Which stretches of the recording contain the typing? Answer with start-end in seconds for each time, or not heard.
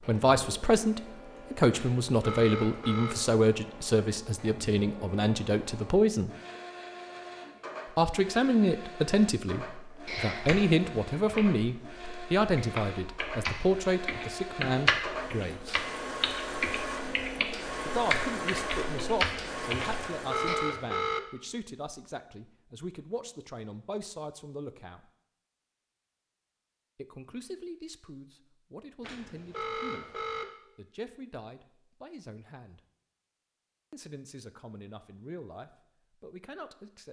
10.1-20.6.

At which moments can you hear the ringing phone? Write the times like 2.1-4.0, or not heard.
1.7-3.1, 19.8-21.2, 29.0-30.4.